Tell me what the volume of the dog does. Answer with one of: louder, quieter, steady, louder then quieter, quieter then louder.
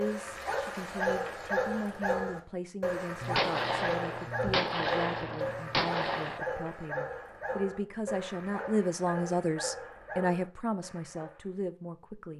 quieter.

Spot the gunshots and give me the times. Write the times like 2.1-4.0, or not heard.
3.2-6.4.